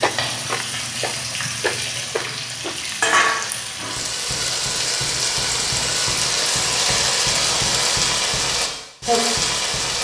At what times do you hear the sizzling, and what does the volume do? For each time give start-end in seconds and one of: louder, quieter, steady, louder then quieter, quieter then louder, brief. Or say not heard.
0.0-9.9 louder.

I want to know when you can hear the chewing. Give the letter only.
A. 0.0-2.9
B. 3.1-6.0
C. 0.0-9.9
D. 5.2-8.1
A.